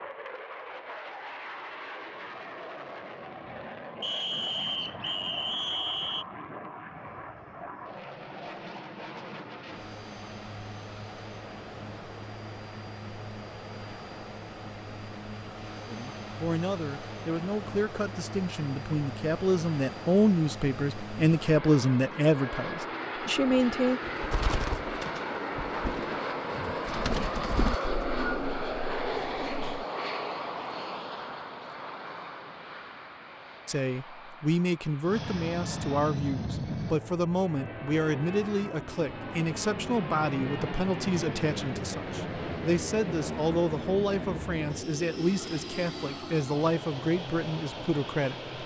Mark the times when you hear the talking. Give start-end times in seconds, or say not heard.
15.8-24.0, 33.6-48.4.